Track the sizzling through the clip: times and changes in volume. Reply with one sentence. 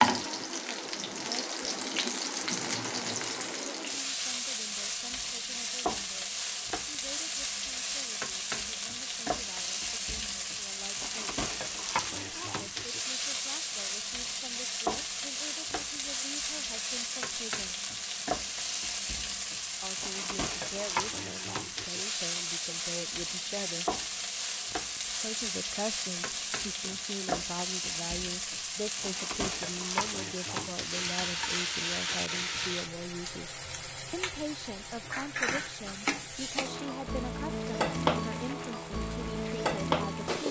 You can hear the sizzling from 0.0 to 40.4 s, at a steady volume.